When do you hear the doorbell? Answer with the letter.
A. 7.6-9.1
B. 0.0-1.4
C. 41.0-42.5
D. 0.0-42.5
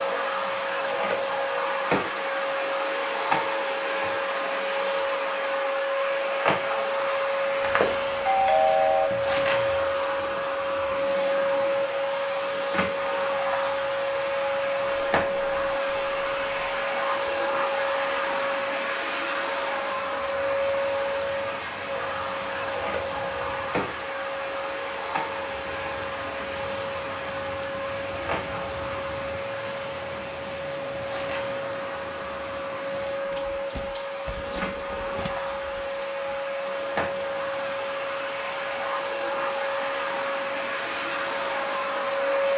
A.